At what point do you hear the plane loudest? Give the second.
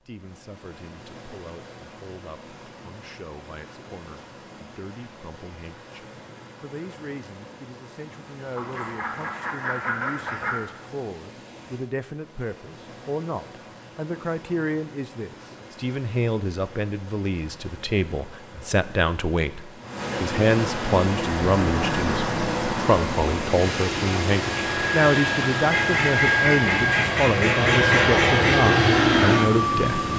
29 s.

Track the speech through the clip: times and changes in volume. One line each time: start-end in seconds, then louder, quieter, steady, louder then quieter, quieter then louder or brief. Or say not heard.
0.1-30.1 louder.